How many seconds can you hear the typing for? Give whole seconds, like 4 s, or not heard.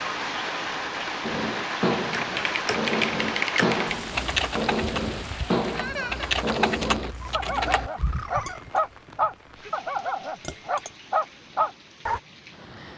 6 s.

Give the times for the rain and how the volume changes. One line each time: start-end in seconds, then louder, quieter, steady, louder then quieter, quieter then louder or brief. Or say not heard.
0.0-12.9 quieter.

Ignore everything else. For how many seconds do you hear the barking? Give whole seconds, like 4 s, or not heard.
11 s.